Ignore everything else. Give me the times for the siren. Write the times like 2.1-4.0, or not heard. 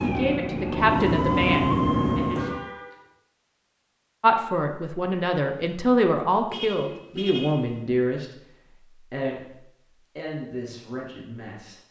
0.0-2.6.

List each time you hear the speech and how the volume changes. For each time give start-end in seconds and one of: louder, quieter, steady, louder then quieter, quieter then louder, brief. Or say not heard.
0.0-2.4 brief
4.2-11.8 quieter.